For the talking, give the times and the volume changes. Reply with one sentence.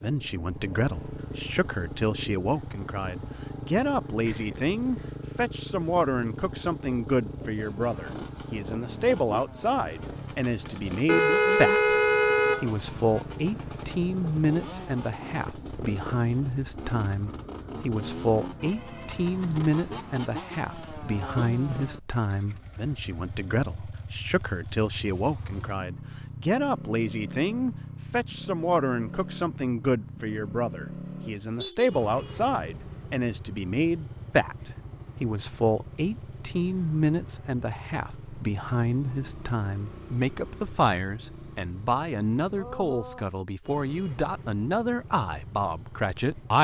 The talking can be heard from 0.0 to 11.8 s, at a steady volume; and from 12.6 to 46.6 s, at a steady volume.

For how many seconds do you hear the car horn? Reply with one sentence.
You can hear the car horn for 4 seconds altogether.